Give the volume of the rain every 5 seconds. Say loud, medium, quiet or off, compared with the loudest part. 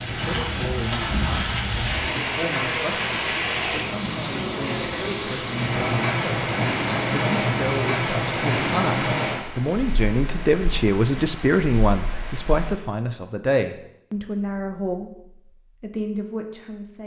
loud, loud, quiet, off.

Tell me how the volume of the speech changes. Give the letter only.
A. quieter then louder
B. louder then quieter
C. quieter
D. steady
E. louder
B.